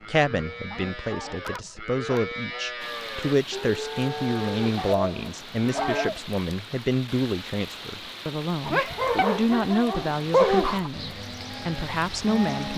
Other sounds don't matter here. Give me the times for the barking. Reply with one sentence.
You can hear the barking from 0.0 to 2.2 s, from 4.8 to 6.2 s and from 8.7 to 10.9 s.